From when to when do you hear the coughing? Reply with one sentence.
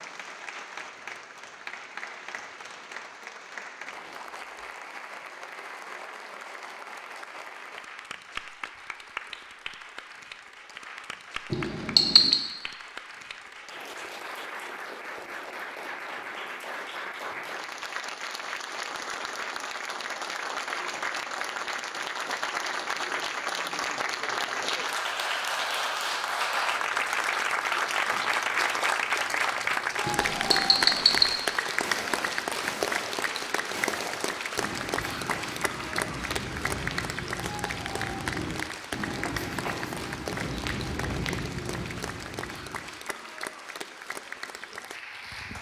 You can't hear the coughing here.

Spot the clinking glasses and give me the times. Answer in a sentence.
You can hear the clinking glasses from 11.5 to 12.4 s and from 30.1 to 31.2 s.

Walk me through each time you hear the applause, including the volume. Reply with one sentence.
You can hear the applause from 0.0 to 45.5 s, getting louder then quieter.